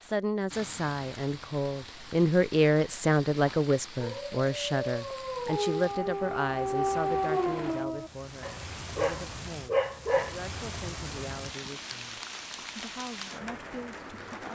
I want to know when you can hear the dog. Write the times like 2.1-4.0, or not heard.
3.3-10.3.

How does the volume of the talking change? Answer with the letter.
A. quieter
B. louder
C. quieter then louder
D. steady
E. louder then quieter
A.